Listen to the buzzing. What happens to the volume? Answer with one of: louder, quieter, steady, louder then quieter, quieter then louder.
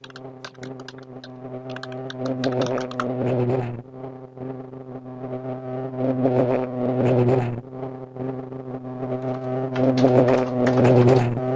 louder.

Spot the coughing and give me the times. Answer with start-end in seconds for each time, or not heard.
not heard.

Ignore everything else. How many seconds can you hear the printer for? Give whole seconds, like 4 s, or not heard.
not heard.